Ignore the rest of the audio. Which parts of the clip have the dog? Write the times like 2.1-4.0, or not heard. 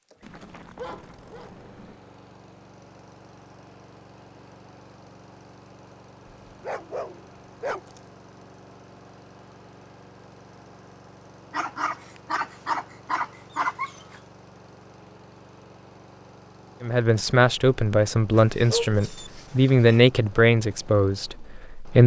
0.2-1.9, 6.5-8.0, 11.5-14.2, 18.3-20.0.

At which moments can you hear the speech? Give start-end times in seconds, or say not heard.
16.8-22.0.